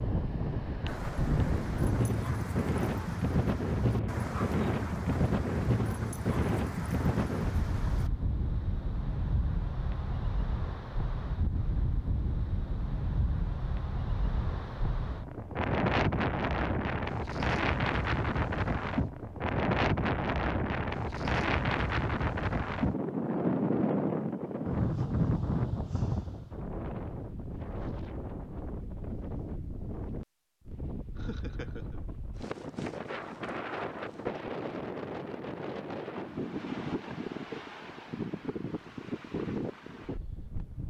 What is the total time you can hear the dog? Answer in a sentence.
You can hear the dog for 7 seconds altogether.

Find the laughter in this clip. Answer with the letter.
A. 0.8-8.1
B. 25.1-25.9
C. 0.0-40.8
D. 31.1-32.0
D.